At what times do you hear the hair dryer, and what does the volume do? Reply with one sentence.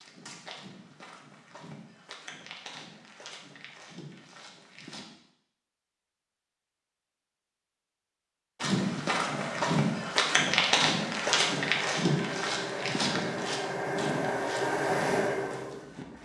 You can hear the hair dryer from 9.2 to 16.2 s, getting louder.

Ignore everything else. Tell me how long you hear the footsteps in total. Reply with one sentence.
The footsteps can be heard for 13 seconds in total.